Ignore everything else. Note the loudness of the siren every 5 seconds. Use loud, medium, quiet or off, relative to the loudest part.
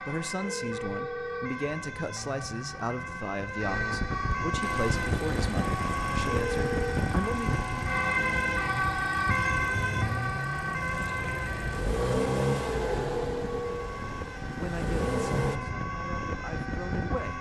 medium, loud, medium, medium.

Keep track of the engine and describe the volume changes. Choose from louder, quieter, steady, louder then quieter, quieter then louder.
louder then quieter.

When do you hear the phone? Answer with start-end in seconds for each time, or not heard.
0.4-1.5, 6.2-7.0, 13.2-13.9.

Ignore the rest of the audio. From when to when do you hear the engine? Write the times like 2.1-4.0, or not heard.
4.6-15.6.